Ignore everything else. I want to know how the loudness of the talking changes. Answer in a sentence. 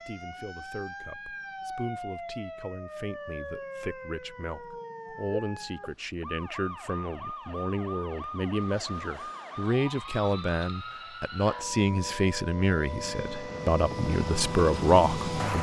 The volume of the talking goes up.